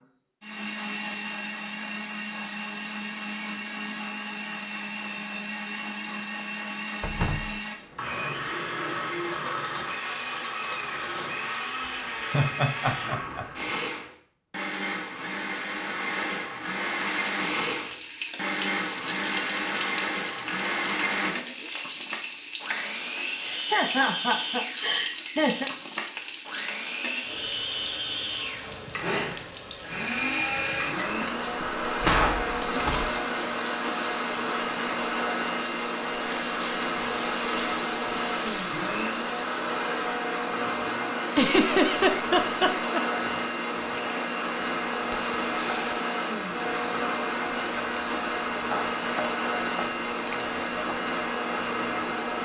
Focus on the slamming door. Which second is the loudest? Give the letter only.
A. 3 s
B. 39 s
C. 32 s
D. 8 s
C.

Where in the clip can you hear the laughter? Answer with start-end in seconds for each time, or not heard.
12.3-13.4, 23.4-25.7, 41.3-43.0.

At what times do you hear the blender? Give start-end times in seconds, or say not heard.
0.4-52.4.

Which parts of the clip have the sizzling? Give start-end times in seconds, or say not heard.
16.9-52.4.